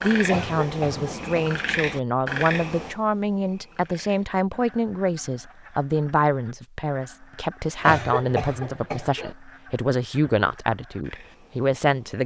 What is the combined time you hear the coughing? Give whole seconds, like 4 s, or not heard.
3 s.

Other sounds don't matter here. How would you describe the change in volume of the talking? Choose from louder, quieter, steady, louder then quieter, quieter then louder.
steady.